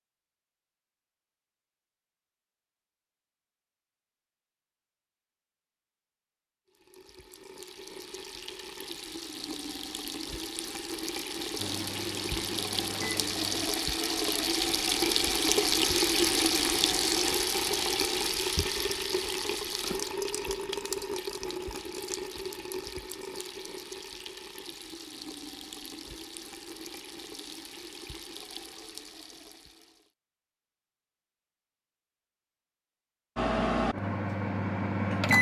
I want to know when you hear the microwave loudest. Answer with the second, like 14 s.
35 s.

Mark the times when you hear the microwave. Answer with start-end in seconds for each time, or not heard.
11.6-13.7, 33.4-35.3.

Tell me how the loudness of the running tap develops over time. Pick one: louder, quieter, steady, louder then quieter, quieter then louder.
louder then quieter.